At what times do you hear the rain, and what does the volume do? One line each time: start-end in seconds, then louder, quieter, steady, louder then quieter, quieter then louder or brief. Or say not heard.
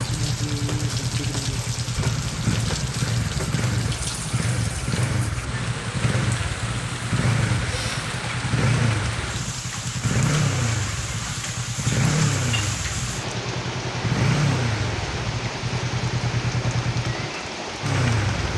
0.0-18.5 steady.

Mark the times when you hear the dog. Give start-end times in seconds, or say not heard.
not heard.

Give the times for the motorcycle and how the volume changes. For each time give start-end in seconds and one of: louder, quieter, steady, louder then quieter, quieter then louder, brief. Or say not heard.
0.0-18.5 steady.